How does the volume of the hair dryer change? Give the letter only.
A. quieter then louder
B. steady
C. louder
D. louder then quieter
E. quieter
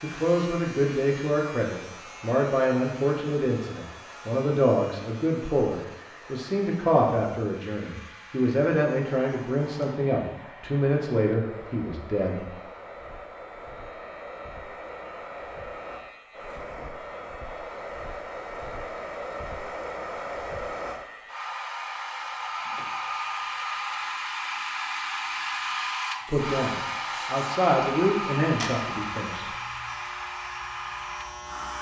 C.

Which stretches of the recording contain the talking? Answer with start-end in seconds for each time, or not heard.
0.0-12.4, 26.2-29.6.